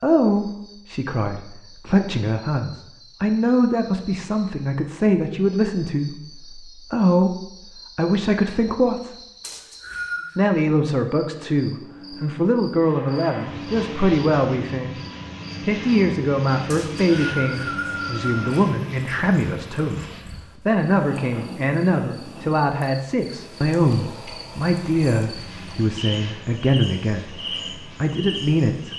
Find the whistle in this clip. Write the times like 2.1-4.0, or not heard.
9.4-10.4, 16.7-18.6.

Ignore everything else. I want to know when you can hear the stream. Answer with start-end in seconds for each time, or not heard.
not heard.